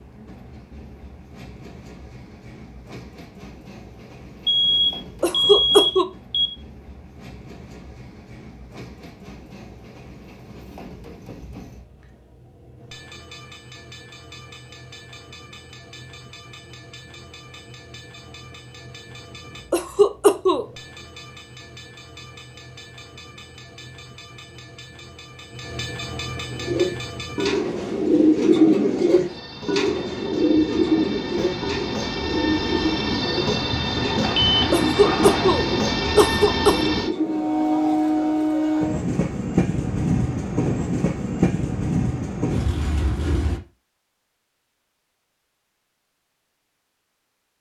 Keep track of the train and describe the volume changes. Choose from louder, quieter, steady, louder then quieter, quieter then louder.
louder.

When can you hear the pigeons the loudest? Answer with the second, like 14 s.
29 s.